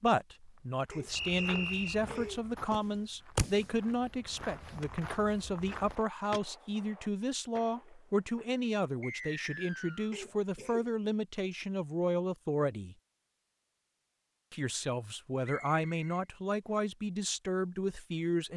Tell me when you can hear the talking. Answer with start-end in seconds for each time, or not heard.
0.0-12.9, 14.5-18.5.